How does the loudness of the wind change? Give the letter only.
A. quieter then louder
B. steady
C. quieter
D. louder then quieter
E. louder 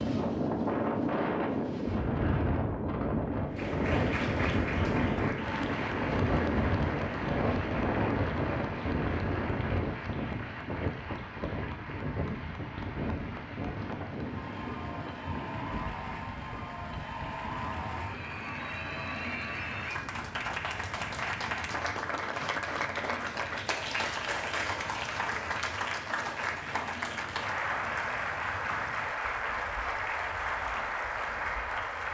C.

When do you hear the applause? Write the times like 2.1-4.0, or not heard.
3.5-32.0.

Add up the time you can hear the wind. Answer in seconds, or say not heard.
32 s.